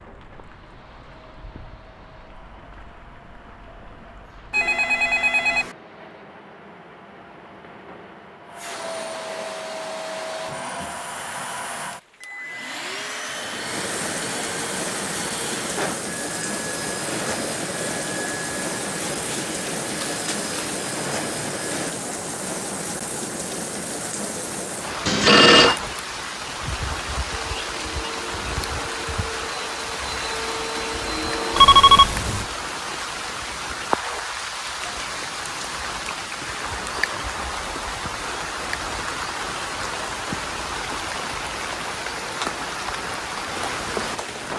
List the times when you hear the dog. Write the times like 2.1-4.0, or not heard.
not heard.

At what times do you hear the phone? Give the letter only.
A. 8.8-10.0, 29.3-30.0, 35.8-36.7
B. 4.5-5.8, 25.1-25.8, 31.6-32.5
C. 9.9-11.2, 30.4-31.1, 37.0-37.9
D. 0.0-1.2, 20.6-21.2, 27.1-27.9
B.